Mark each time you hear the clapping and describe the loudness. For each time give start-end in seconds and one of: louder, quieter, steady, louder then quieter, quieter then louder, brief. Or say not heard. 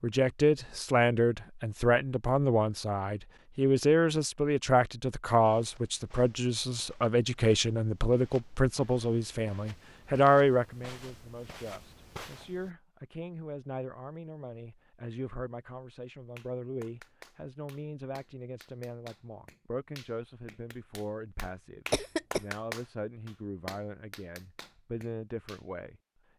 16.4-25.6 louder then quieter.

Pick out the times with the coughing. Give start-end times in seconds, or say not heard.
21.9-22.4.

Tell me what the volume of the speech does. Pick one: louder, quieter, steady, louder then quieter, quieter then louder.
quieter.